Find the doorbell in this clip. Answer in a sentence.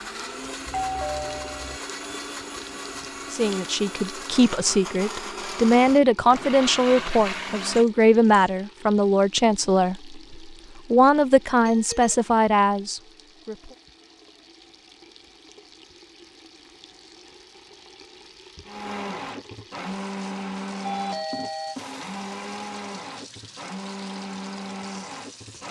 You can hear the doorbell from 0.7 to 1.8 s, from 11.6 to 12.2 s and from 20.9 to 21.8 s.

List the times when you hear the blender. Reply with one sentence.
You can hear the blender from 0.0 to 8.5 s and from 18.6 to 25.6 s.